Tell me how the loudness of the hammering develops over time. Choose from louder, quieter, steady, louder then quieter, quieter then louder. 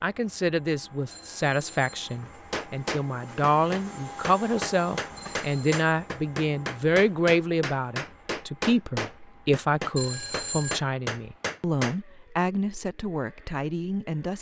steady.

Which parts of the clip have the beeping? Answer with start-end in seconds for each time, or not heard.
1.1-2.1, 5.2-5.8, 9.9-10.8.